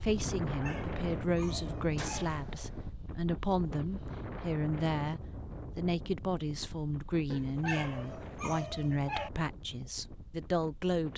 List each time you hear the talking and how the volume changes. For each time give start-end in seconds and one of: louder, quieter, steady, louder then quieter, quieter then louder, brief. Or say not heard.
0.0-11.1 steady.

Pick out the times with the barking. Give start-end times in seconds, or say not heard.
0.5-2.3, 7.3-9.3.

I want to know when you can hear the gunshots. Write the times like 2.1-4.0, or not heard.
1.9-2.9.